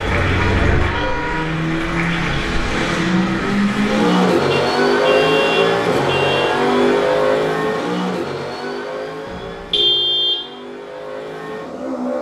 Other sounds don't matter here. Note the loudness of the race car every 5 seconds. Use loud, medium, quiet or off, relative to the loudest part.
loud, loud, medium.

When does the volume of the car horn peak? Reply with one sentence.
The loudest moment of the car horn is at 10 seconds.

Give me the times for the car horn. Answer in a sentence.
The car horn can be heard from 0.3 to 1.4 s, from 4.5 to 6.5 s and from 9.2 to 10.5 s.